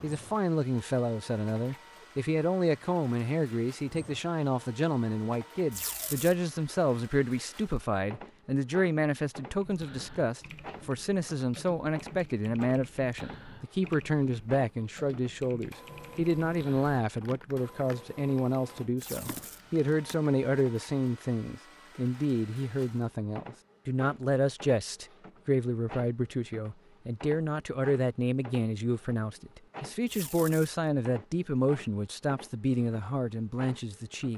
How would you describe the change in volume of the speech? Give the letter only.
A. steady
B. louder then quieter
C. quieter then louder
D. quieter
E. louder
A.